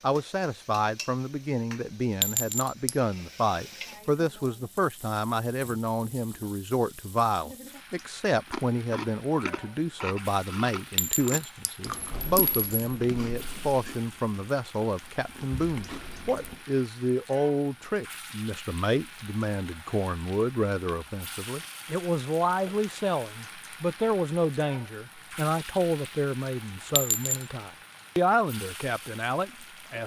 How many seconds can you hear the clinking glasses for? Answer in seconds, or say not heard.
3 s.